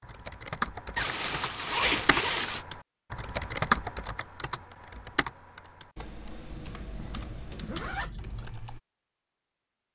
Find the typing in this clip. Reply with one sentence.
You can hear the typing from 0.0 to 8.8 s.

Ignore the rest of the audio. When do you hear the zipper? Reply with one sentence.
The zipper can be heard from 0.9 to 2.6 s and from 6.5 to 8.5 s.